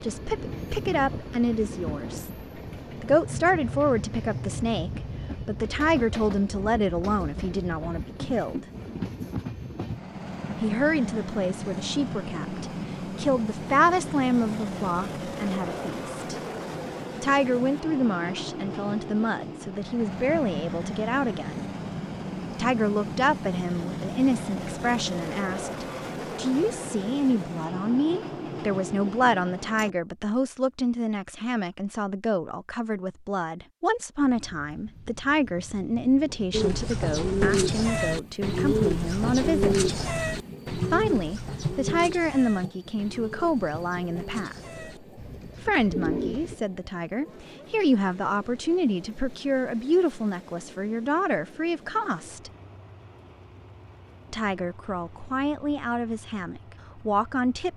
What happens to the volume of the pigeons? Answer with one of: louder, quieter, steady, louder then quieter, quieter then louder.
quieter then louder.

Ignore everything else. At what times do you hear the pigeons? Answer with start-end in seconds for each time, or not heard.
36.5-46.5.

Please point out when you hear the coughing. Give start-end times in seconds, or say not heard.
not heard.